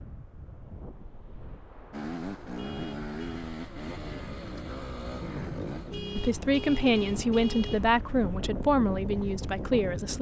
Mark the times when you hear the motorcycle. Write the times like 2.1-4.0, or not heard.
1.9-10.1.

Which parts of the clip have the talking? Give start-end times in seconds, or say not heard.
6.2-10.1.